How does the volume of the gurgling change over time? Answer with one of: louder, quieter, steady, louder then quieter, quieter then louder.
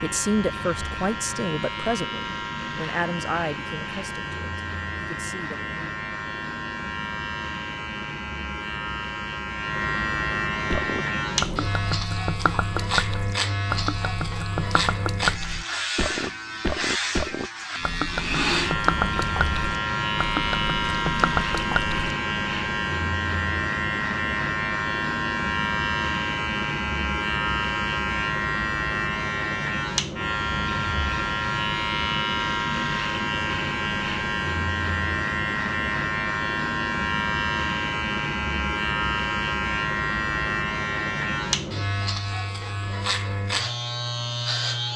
steady.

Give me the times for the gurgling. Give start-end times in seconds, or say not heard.
10.7-22.0.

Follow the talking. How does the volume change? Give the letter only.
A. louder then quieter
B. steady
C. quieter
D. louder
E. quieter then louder
C.